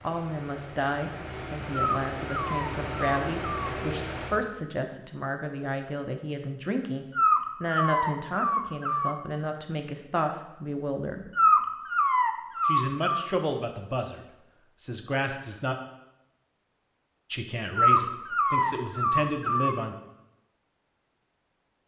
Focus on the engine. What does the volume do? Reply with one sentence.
The loudness of the engine goes up.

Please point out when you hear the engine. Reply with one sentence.
The engine can be heard from 0.0 to 4.3 s.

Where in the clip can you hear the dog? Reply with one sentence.
The dog can be heard from 1.9 to 3.7 s, from 7.2 to 9.2 s, from 11.3 to 13.3 s and from 17.8 to 19.8 s.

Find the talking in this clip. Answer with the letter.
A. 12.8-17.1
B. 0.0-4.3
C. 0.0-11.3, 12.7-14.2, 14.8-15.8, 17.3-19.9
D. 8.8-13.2
C.